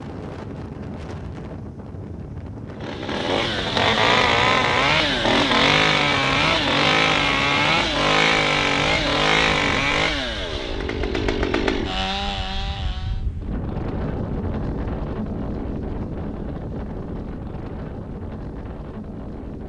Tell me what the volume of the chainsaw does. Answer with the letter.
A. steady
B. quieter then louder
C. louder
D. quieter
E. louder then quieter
D.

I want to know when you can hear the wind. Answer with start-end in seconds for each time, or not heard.
0.0-19.6.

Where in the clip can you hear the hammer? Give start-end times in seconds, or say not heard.
not heard.